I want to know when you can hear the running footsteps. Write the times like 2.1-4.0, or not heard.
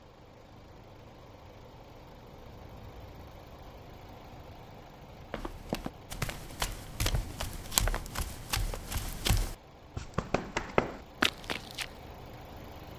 5.3-11.9.